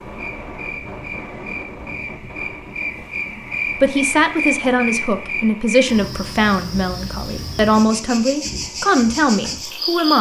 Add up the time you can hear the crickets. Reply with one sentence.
You can hear the crickets for 10 seconds altogether.